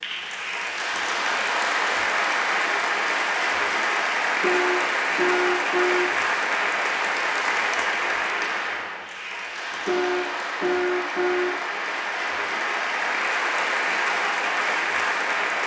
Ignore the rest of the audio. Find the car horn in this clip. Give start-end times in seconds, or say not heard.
4.4-6.2, 9.8-11.6.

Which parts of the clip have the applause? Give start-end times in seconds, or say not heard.
0.0-15.6.